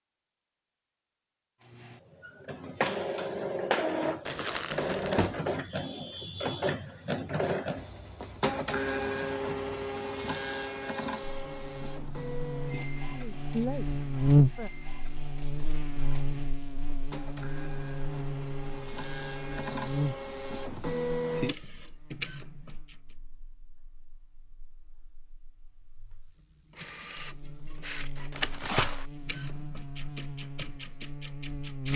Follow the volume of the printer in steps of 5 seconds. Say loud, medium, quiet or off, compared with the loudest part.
loud, loud, medium, medium, loud, medium, medium.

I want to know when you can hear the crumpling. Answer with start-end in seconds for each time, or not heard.
4.2-5.4, 28.3-29.1.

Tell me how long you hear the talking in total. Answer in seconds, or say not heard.
2 s.